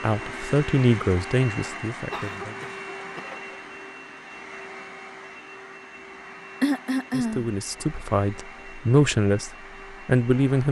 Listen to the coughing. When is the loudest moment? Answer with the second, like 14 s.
7 s.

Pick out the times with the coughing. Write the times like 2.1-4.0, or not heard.
2.1-3.6, 6.6-7.5.